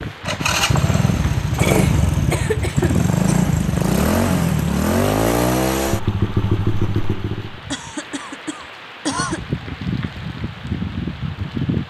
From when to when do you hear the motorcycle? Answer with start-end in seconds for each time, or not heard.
0.0-7.6.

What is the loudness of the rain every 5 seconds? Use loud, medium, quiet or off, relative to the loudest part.
loud, medium, loud.